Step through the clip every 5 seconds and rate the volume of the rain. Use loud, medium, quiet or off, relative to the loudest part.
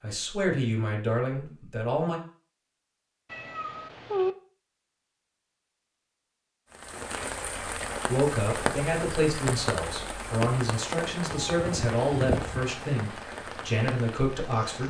off, loud, loud.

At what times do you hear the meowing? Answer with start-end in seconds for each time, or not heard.
3.3-4.3, 11.3-12.7.